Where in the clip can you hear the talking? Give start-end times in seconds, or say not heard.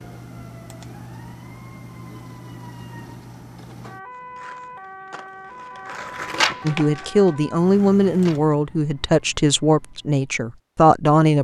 6.7-11.3.